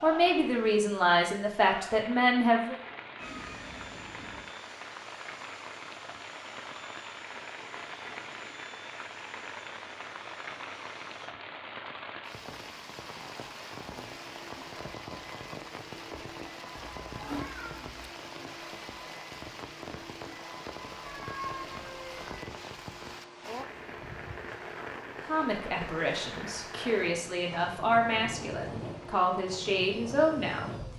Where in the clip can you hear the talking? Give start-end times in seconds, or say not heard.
0.0-2.8, 25.2-30.7.